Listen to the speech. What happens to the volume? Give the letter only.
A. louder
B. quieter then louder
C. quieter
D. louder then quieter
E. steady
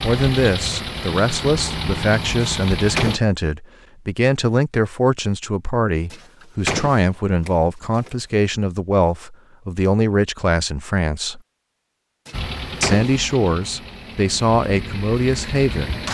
E.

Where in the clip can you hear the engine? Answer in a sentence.
The engine can be heard from 0.0 to 3.2 s and from 12.3 to 16.0 s.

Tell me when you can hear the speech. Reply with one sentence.
You can hear the speech from 0.0 to 11.4 s and from 12.8 to 16.0 s.